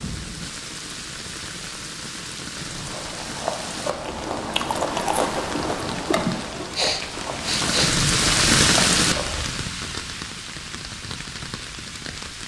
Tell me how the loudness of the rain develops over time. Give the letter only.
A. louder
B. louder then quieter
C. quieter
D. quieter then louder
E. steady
B.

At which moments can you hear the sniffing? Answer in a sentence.
You can hear the sniffing from 6.2 to 8.0 s.